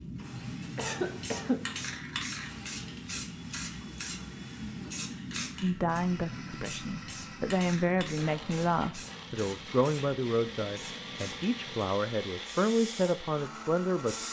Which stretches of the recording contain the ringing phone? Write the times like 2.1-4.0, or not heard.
not heard.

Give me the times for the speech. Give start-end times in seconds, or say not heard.
5.6-14.2.